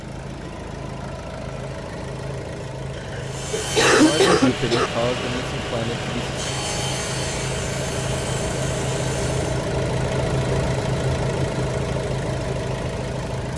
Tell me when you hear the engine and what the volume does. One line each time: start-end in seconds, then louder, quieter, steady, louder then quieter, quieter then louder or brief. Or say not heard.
0.0-13.5 louder.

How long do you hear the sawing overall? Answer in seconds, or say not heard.
6 s.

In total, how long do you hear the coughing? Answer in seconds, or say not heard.
2 s.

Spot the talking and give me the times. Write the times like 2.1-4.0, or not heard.
3.9-6.2.